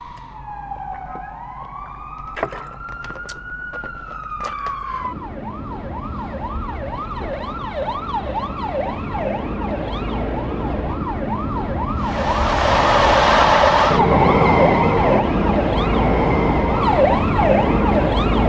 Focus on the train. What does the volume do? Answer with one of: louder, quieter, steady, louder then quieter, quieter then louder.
quieter.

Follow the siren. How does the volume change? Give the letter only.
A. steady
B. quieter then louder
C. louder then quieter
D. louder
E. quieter
D.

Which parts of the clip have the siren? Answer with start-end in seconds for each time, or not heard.
0.0-18.4.